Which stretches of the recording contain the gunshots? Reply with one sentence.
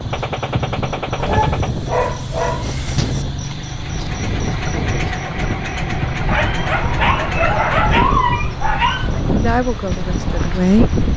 The gunshots can be heard from 0.1 to 1.7 s.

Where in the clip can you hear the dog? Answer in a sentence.
The dog can be heard from 1.1 to 3.2 s and from 6.2 to 9.2 s.